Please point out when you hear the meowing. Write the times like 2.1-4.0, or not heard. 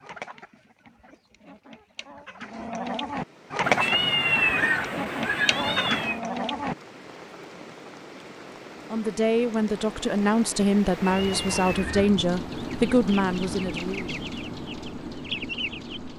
3.6-6.2, 10.9-12.2.